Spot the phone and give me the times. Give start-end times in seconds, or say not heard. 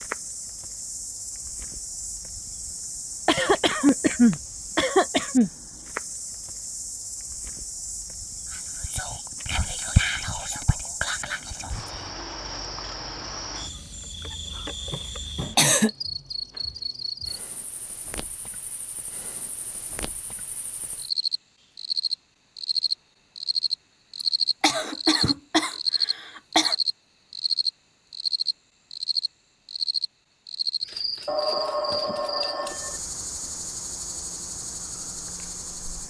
31.2-33.0.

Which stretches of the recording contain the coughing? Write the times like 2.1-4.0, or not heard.
3.2-5.5, 14.9-15.9, 24.2-26.8.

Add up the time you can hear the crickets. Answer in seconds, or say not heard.
36 s.